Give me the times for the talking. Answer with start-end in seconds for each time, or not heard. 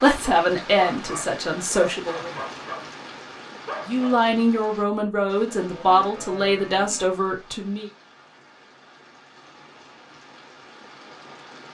0.0-2.3, 3.9-7.9.